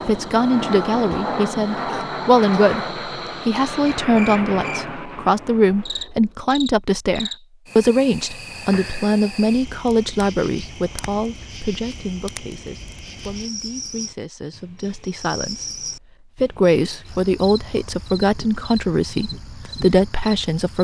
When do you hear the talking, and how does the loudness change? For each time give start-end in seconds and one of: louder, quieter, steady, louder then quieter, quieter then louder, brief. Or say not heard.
0.0-20.7 quieter then louder.